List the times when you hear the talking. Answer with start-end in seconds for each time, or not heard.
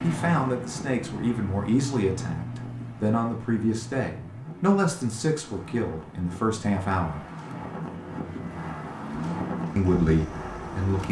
0.0-7.2, 9.8-11.0.